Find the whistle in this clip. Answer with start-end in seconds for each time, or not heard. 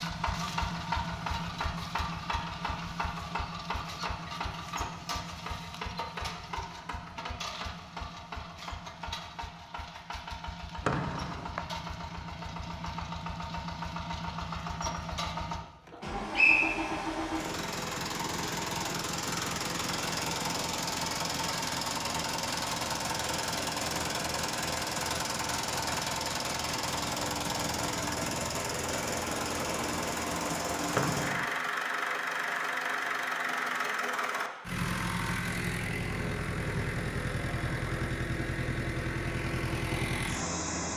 10.8-11.7, 15.9-17.1, 30.9-31.5.